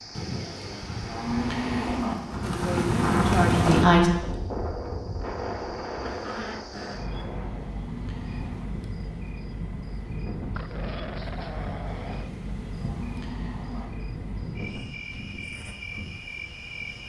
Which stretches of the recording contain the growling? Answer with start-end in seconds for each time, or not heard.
6.0-7.0, 10.6-12.3.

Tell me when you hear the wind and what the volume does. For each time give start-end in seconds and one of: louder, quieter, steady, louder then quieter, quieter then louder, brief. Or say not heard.
0.0-17.0 quieter.